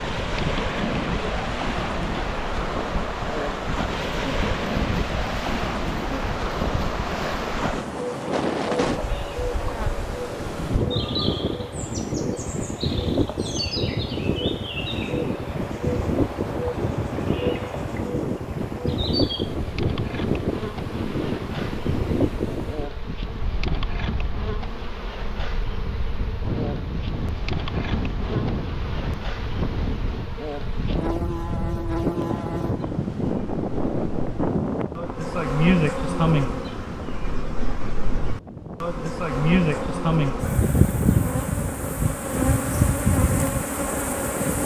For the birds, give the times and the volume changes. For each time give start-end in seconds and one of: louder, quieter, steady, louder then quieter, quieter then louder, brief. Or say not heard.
not heard.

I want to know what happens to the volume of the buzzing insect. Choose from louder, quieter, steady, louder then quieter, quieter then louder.
louder.